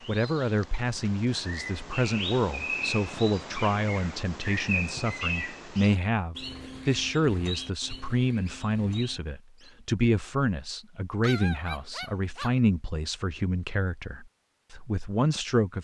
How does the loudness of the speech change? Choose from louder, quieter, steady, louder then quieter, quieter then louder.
steady.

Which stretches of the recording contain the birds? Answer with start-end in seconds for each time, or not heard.
0.0-9.7.